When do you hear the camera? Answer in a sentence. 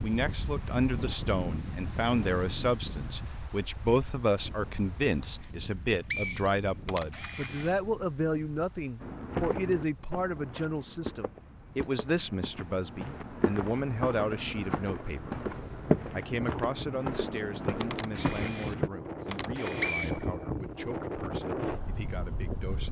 The camera can be heard from 6.8 to 7.8 s and from 17.9 to 20.1 s.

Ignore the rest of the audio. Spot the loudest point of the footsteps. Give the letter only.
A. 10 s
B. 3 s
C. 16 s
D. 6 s
C.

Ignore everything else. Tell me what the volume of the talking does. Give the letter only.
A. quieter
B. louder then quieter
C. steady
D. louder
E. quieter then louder
A.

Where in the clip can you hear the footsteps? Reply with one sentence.
You can hear the footsteps from 9.0 to 18.9 s.